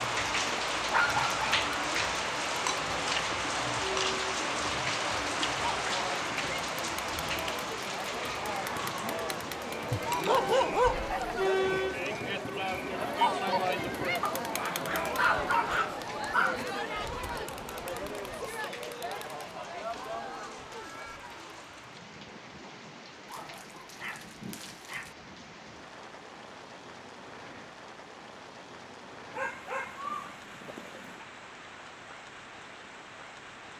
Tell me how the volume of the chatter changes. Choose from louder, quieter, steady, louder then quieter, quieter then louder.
louder then quieter.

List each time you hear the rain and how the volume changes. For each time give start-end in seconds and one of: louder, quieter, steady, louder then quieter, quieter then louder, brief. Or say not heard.
0.0-33.7 quieter.